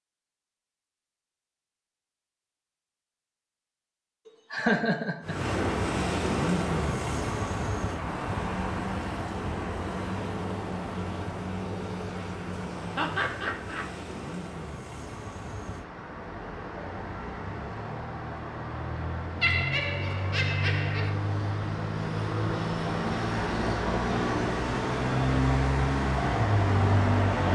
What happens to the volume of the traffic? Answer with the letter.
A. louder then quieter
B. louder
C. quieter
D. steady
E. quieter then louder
E.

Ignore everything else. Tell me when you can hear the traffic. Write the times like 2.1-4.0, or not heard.
5.2-27.4.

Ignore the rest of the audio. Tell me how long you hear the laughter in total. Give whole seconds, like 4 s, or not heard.
4 s.